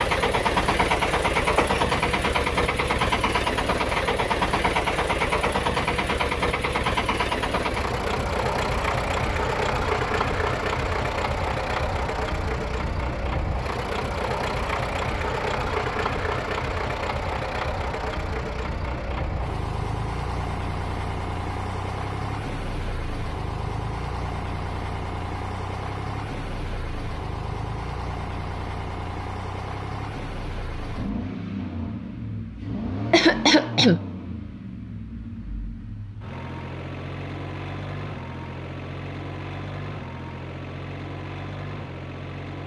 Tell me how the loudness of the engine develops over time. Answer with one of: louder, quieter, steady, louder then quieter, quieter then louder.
quieter.